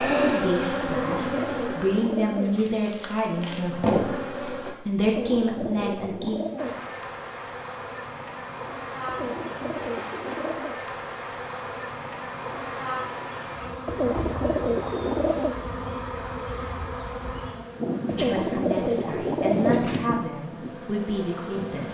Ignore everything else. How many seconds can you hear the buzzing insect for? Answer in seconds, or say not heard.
20 s.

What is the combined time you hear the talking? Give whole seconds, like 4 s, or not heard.
10 s.